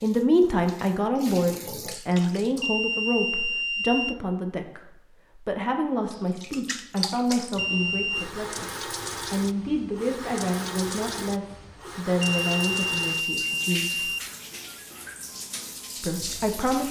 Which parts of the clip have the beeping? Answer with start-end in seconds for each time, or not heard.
2.6-4.2, 7.5-8.2, 12.2-14.2.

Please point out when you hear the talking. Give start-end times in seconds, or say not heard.
0.0-14.1, 16.0-16.8.